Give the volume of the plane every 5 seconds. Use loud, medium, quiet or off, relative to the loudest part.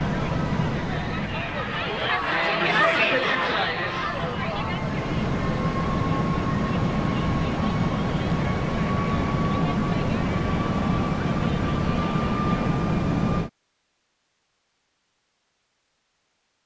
medium, loud, loud, off.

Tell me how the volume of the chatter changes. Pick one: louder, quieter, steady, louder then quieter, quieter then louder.
quieter.